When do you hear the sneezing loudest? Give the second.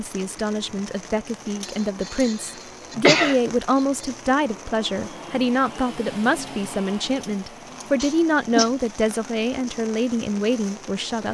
3 s.